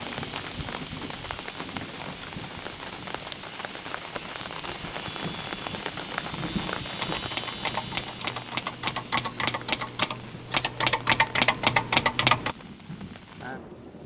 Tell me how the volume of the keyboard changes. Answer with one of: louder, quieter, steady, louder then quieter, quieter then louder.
louder.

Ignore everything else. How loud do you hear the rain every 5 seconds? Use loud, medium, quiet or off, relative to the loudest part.
loud, loud, medium.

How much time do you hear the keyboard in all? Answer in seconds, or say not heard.
6 s.